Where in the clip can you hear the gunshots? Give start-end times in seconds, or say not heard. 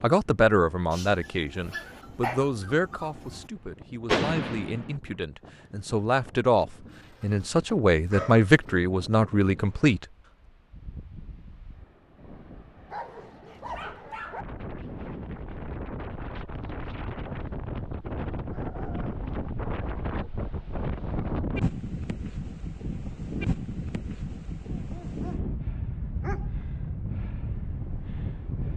4.0-5.0.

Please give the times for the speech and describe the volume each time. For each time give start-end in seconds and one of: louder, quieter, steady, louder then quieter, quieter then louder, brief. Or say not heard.
0.0-10.1 quieter then louder.